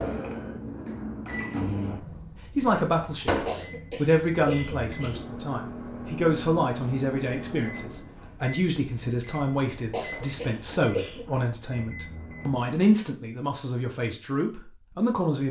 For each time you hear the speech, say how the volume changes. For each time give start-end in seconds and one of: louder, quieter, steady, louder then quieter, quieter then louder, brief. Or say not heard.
2.5-15.4 steady.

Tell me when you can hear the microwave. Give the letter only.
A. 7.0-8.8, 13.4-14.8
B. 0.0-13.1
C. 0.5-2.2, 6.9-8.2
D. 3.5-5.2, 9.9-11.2
B.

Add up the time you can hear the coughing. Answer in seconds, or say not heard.
3 s.